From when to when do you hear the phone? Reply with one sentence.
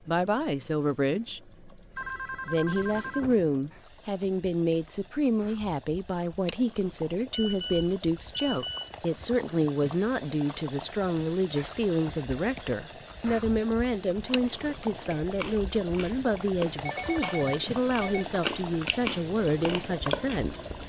The phone can be heard from 1.9 to 3.5 s, from 7.3 to 8.9 s and from 16.9 to 18.3 s.